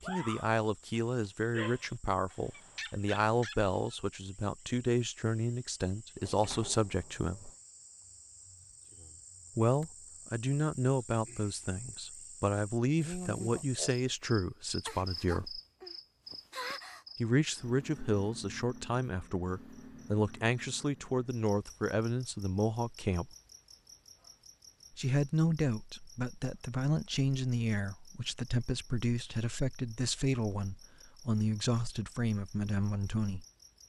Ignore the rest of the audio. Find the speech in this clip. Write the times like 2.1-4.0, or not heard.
0.0-7.5, 9.6-15.6, 17.1-23.3, 24.9-33.5.